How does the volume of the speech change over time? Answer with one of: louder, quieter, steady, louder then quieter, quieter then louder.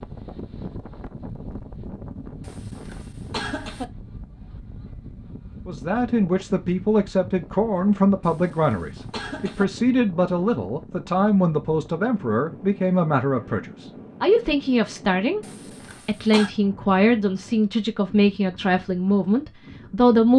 steady.